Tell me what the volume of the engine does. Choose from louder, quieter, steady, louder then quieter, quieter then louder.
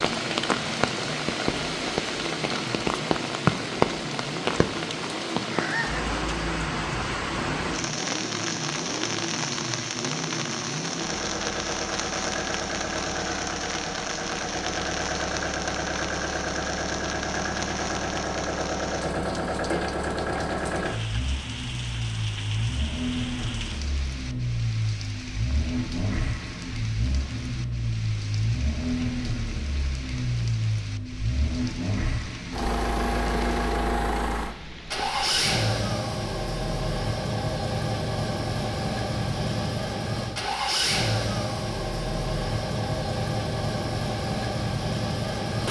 louder.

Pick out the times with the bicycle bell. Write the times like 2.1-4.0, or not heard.
not heard.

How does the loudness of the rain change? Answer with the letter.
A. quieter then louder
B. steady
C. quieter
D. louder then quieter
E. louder
C.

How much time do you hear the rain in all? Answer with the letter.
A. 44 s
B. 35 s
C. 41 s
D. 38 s
B.